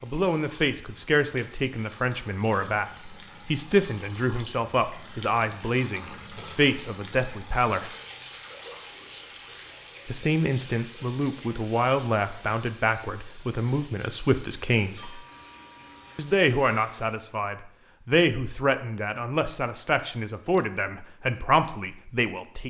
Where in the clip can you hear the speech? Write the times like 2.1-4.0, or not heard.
0.0-7.9, 10.1-15.2, 16.1-22.6.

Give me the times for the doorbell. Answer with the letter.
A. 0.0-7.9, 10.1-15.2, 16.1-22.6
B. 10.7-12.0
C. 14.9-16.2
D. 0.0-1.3
C.